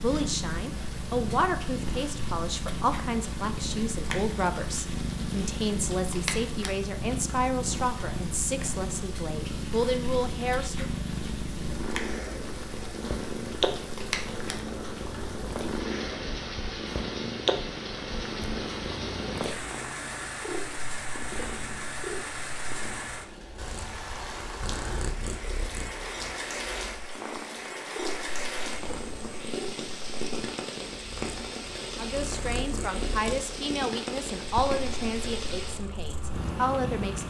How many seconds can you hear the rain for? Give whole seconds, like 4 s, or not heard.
37 s.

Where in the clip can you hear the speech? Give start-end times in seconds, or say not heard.
0.0-10.8, 31.9-37.2.